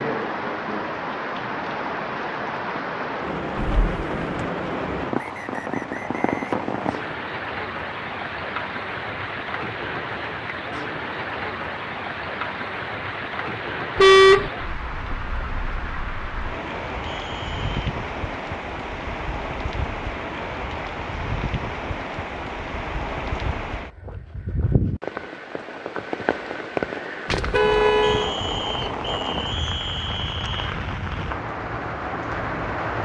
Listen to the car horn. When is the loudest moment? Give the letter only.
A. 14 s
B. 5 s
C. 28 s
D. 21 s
A.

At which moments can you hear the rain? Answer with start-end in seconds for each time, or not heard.
0.0-32.9.